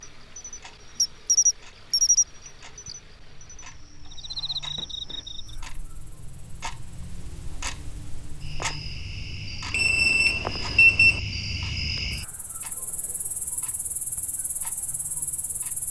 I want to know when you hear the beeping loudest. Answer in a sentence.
The volume of the beeping peaks at 11 seconds.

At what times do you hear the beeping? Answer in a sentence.
The beeping can be heard from 9.7 to 11.2 s.